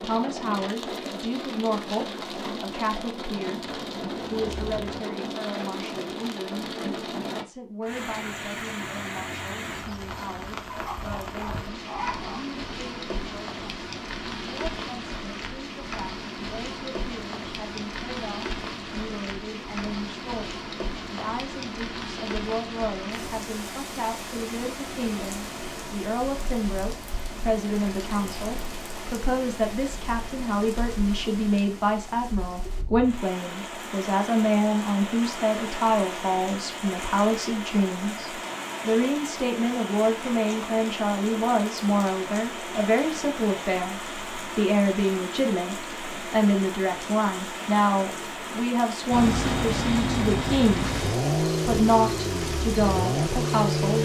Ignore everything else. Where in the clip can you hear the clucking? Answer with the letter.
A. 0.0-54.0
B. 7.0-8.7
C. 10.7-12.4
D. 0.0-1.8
C.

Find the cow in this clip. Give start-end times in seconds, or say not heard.
not heard.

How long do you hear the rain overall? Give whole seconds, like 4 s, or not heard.
54 s.